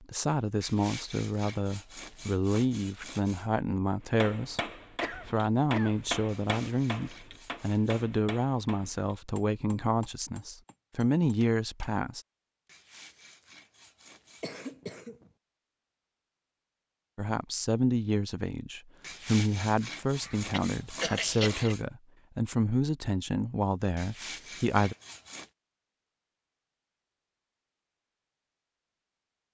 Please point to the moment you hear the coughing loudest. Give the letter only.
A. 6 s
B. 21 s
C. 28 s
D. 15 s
B.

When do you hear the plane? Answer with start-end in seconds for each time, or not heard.
not heard.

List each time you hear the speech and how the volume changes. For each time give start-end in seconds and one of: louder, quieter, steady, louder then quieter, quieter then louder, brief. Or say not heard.
0.0-12.2 steady
17.1-24.9 steady.